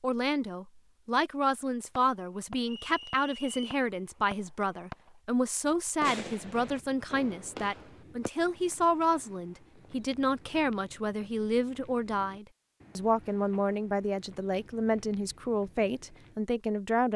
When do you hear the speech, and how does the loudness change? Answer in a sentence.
The speech can be heard from 0.0 to 17.1 s, at a steady volume.